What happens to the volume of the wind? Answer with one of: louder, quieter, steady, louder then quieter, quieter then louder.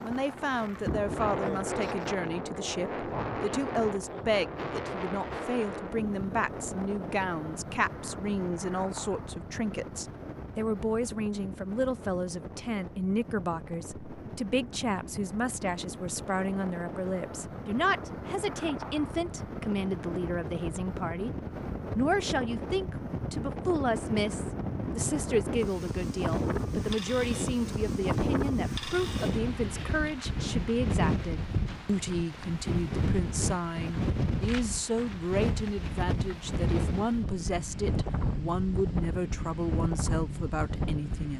quieter then louder.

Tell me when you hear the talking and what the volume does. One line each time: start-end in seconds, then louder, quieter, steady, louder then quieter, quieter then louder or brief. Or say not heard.
0.0-21.3 steady
21.9-41.3 steady.